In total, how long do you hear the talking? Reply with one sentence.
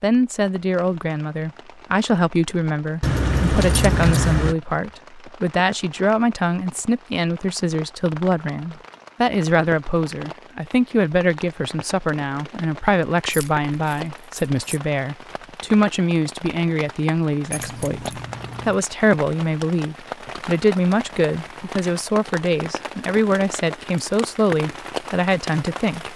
You can hear the talking for 26 seconds altogether.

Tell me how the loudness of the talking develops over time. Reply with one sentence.
The volume of the talking stays about the same.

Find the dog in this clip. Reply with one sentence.
You can't hear the dog here.